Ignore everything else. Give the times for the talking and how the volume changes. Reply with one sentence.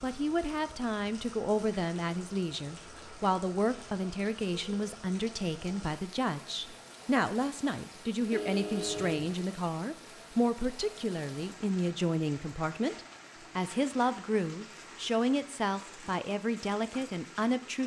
You can hear the talking from 0.0 to 17.8 s, at a steady volume.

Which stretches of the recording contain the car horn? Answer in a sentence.
The car horn can be heard from 8.3 to 9.3 s.